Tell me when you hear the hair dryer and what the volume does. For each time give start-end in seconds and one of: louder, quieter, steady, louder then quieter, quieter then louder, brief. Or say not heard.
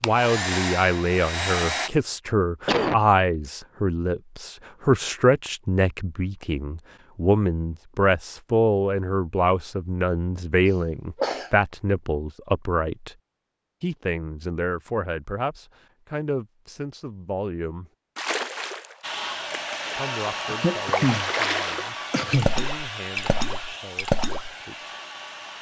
0.0-1.9 brief
19.0-25.5 quieter.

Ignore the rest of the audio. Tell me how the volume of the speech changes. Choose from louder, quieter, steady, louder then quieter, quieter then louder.
quieter.